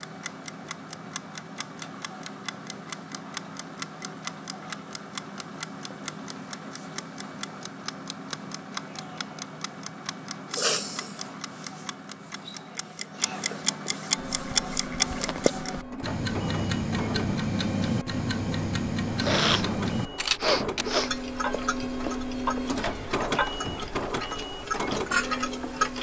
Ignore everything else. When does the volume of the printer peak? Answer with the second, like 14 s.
23 s.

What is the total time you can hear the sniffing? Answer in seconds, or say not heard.
3 s.